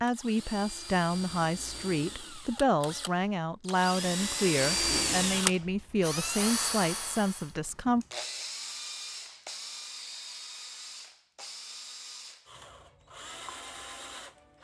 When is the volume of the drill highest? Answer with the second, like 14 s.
5 s.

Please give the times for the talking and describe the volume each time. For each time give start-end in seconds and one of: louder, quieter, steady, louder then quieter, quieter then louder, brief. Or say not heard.
0.0-8.1 steady.